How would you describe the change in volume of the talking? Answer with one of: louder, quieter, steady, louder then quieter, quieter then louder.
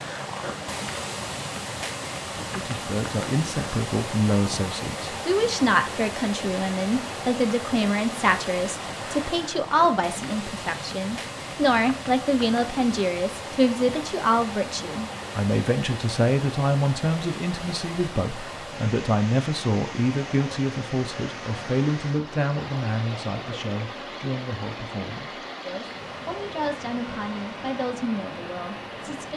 quieter.